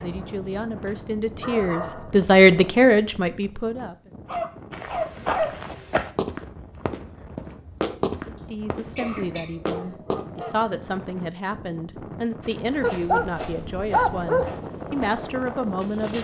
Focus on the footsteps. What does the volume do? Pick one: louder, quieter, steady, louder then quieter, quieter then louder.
quieter.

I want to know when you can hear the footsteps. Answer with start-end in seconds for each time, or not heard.
4.7-10.2, 12.4-16.1.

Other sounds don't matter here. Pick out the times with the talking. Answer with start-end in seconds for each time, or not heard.
0.0-4.0, 8.2-16.1.